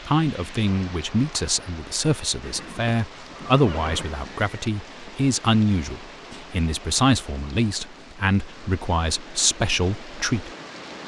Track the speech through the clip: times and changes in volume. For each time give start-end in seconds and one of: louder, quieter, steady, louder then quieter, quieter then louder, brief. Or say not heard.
0.1-10.5 steady.